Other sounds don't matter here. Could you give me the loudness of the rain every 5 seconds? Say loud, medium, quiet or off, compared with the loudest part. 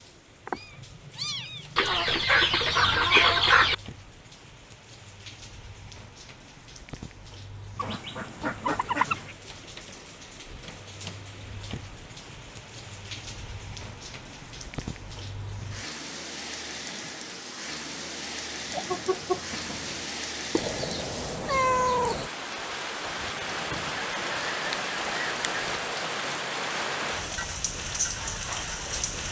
quiet, quiet, medium, medium, loud, loud.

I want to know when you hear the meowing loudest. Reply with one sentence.
The loudest moment of the meowing is at 22 seconds.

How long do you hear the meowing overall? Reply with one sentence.
The meowing can be heard for 4 seconds in total.